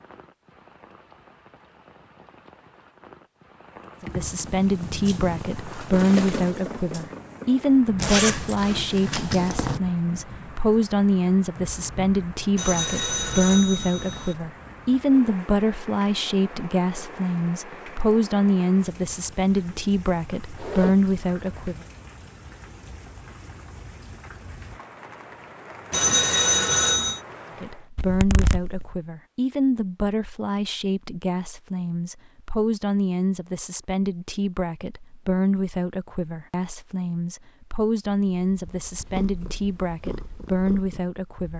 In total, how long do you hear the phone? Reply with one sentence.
You can hear the phone for 3 seconds altogether.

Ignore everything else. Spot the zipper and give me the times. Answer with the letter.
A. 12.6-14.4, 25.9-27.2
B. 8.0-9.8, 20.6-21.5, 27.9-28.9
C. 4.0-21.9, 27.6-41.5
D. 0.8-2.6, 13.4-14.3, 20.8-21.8
B.